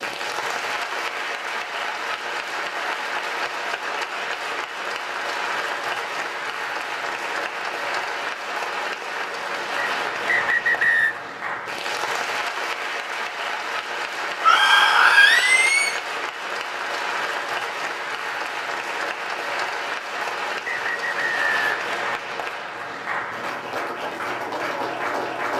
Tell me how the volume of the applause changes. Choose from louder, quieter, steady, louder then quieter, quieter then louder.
steady.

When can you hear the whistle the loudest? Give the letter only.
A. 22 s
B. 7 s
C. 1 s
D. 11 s
D.